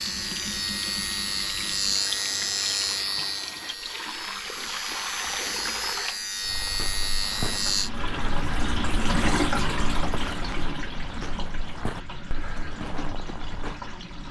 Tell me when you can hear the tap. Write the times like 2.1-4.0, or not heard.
0.0-14.2.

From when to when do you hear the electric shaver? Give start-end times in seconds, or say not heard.
0.0-7.9.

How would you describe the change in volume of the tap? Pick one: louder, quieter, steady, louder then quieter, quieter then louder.
louder then quieter.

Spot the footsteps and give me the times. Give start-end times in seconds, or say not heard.
6.4-13.8.